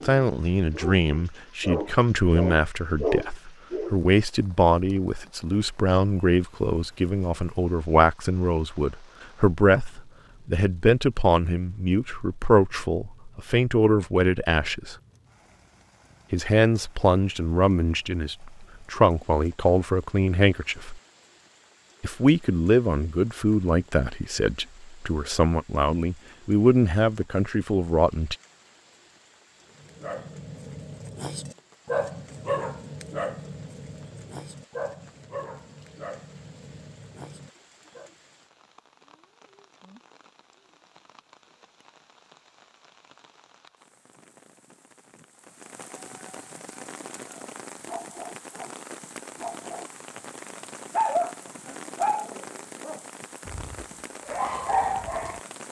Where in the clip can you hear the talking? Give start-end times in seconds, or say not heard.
0.0-14.9, 16.3-21.0, 22.0-28.4.